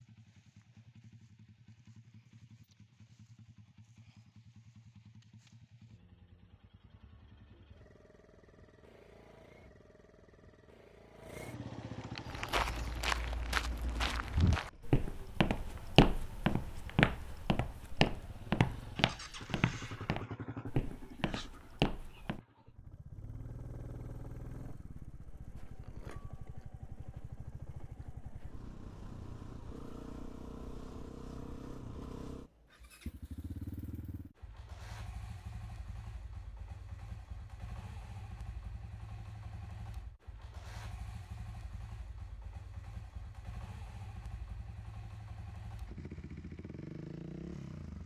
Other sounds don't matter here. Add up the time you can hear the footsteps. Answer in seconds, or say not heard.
10 s.